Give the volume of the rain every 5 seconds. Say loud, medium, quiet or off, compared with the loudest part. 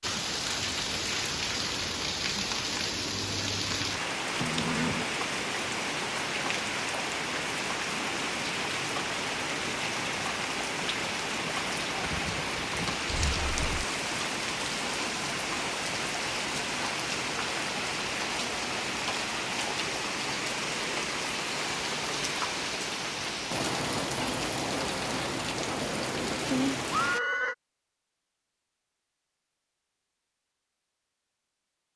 loud, loud, loud, loud, loud, loud, off.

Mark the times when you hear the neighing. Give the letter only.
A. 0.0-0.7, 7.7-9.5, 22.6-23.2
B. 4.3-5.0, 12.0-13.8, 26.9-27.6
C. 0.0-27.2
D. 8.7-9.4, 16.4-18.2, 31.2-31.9
B.